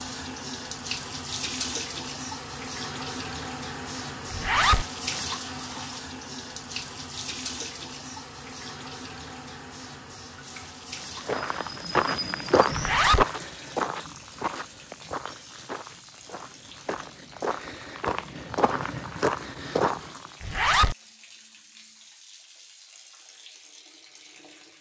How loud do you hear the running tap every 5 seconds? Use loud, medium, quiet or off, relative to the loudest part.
loud, loud, medium, quiet, quiet.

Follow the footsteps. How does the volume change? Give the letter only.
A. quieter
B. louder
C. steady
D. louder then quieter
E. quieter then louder
E.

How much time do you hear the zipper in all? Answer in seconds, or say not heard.
2 s.